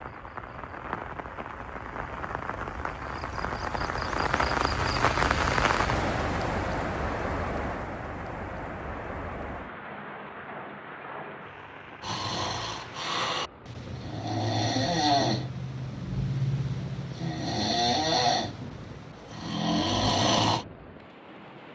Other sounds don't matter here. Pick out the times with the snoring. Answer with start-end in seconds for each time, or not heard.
12.0-20.6.